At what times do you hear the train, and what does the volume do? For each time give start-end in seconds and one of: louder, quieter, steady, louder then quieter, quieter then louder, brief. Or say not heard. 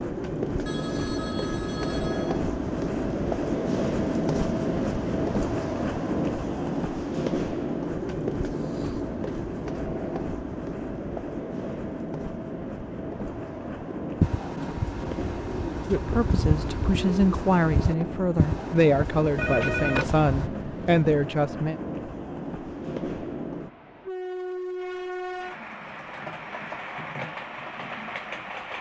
0.0-28.7 quieter.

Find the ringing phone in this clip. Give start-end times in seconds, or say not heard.
0.7-2.4, 19.4-21.1.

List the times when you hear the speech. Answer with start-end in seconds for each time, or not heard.
15.8-21.8.